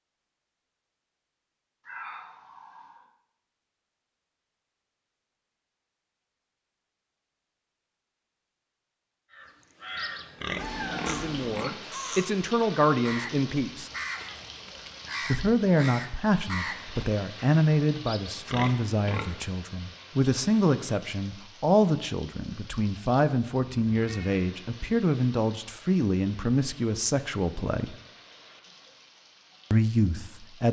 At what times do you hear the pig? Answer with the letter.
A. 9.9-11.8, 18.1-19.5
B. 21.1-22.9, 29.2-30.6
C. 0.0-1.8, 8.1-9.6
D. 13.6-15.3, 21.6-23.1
A.